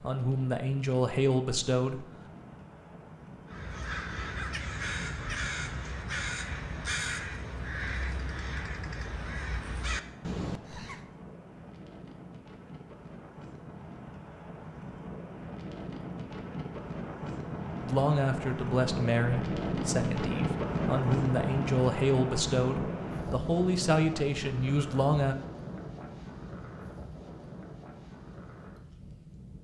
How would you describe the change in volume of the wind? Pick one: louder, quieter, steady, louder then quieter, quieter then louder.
louder then quieter.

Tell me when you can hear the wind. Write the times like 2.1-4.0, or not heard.
0.0-29.5.